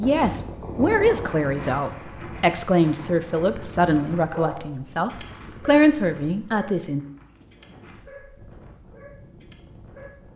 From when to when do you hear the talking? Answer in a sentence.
You can hear the talking from 0.0 to 7.0 s.